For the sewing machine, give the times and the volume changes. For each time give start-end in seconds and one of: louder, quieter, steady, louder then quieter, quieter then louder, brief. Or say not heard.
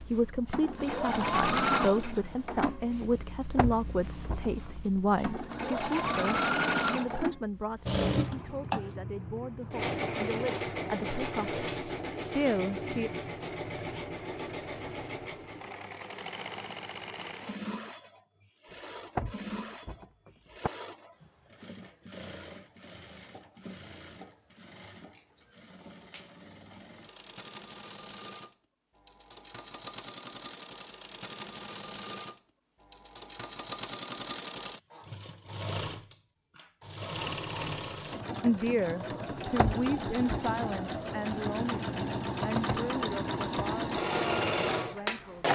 0.0-45.4 quieter then louder.